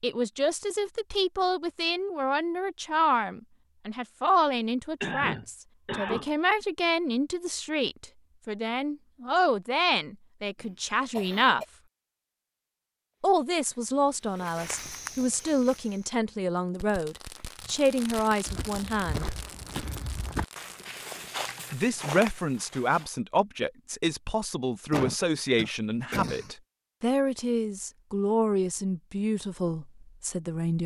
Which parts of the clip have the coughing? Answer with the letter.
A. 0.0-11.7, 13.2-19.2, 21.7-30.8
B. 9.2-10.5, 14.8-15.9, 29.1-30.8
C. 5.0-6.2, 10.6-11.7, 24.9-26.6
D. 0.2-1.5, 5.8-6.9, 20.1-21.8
C.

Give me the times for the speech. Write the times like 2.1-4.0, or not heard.
0.0-11.7, 13.2-19.2, 21.7-30.8.